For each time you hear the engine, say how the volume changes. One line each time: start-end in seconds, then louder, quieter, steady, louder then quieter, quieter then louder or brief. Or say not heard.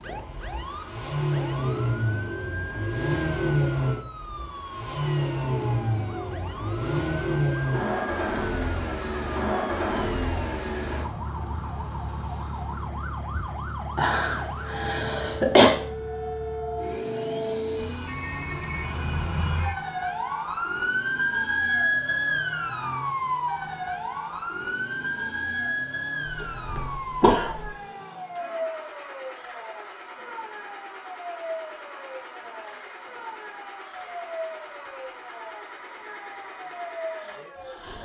0.0-38.0 quieter.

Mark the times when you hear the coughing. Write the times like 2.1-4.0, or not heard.
13.9-15.7, 26.2-27.7.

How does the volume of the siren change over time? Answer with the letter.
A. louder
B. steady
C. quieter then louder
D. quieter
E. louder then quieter
E.